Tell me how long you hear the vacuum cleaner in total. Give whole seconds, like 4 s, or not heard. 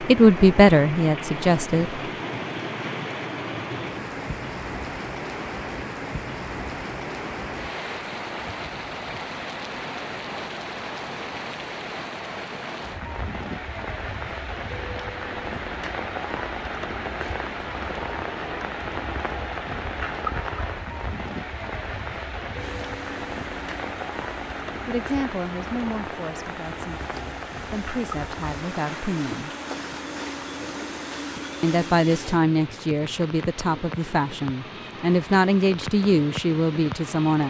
10 s.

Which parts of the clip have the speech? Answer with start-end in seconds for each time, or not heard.
0.0-2.0, 24.9-29.5, 31.6-37.4.